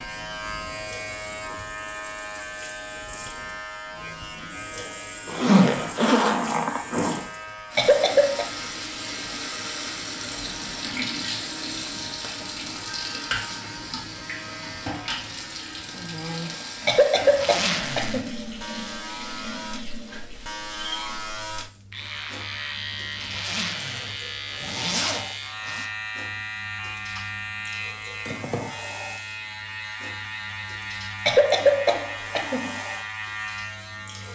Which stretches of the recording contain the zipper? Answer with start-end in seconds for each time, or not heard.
5.2-7.2, 17.2-18.2, 23.1-25.9.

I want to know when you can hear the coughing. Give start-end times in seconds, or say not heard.
7.8-8.4, 16.9-18.4, 31.2-32.8.